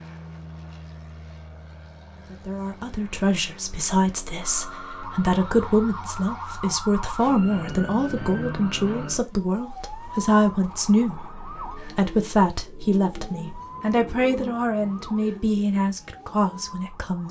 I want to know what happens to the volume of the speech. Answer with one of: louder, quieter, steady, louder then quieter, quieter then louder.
steady.